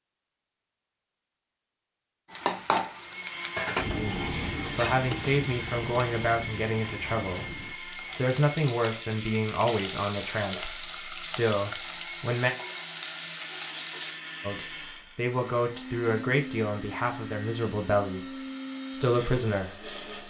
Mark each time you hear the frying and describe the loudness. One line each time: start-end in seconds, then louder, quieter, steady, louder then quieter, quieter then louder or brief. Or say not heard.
2.3-14.2 quieter then louder.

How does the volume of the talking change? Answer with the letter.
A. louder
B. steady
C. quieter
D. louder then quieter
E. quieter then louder
B.